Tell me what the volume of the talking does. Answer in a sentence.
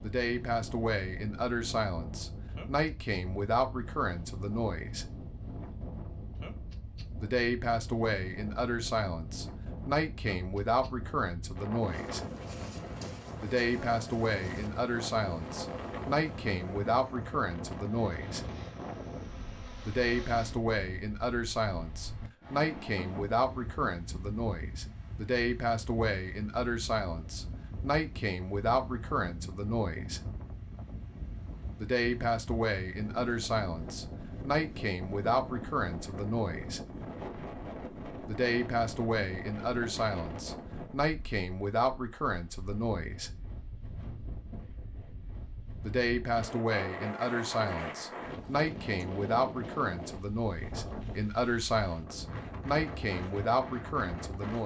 The volume of the talking stays about the same.